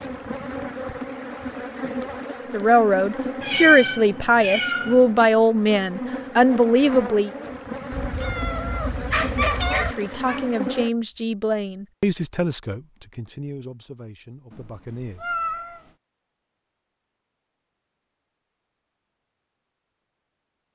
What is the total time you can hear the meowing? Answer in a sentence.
You can hear the meowing for 5 seconds altogether.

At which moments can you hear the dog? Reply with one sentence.
You can hear the dog from 9.1 to 10.5 s.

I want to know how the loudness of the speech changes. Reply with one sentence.
The volume of the speech goes down.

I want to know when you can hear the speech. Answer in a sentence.
You can hear the speech from 2.5 to 7.3 s and from 9.8 to 15.3 s.